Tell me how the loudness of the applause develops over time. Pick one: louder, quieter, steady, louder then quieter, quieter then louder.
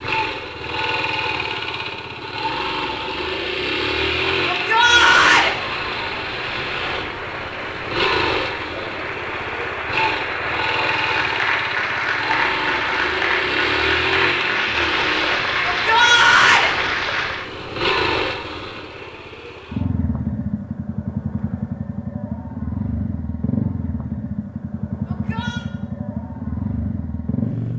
louder.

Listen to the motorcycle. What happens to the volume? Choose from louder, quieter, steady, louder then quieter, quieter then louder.
steady.